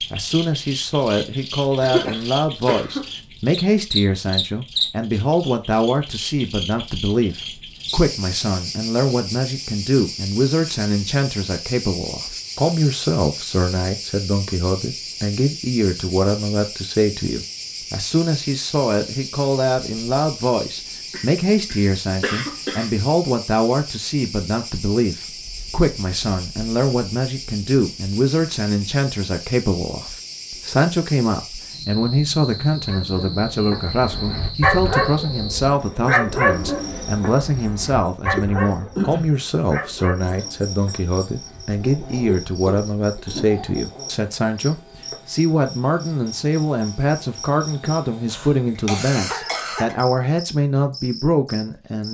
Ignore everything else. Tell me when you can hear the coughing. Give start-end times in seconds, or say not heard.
1.8-3.1, 21.1-22.9, 48.2-50.0.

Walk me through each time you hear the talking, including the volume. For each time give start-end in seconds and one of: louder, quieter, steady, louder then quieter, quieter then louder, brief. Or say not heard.
0.1-52.0 steady.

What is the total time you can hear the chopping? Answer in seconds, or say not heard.
not heard.